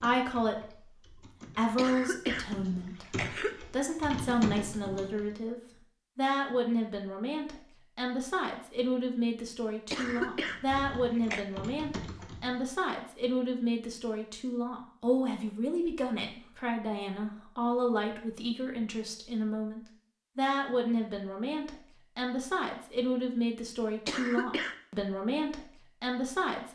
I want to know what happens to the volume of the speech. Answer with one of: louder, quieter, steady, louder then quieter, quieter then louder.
steady.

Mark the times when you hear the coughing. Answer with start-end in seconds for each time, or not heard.
1.8-2.5, 3.0-3.6, 9.9-11.4, 24.1-24.8.